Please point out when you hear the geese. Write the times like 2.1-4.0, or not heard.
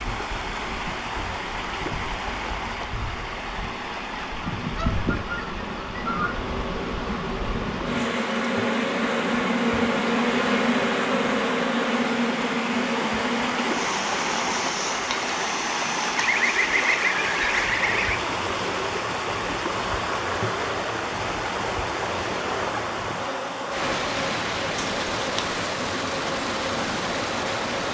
4.2-6.5, 16.1-18.2.